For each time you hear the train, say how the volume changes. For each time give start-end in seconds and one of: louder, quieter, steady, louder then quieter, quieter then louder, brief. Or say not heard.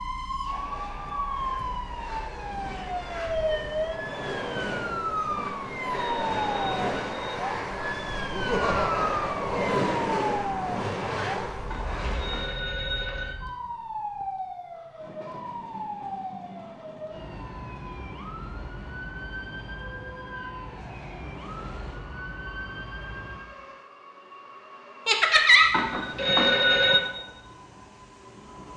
0.0-28.7 louder then quieter.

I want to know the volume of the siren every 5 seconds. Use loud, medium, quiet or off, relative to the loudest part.
loud, loud, medium, medium, medium, off.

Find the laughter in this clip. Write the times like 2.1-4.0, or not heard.
8.3-9.6, 25.1-25.6.